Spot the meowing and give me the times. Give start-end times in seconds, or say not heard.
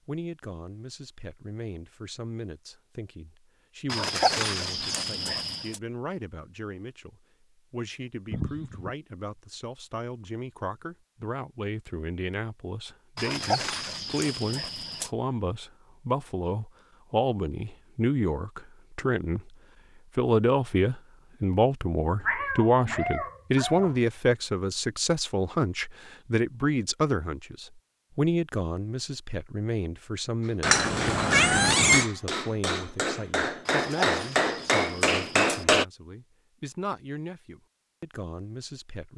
8.3-8.9, 22.2-24.0, 30.6-32.0.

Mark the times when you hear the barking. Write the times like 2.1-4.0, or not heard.
3.9-5.8, 13.2-15.1, 33.6-35.6.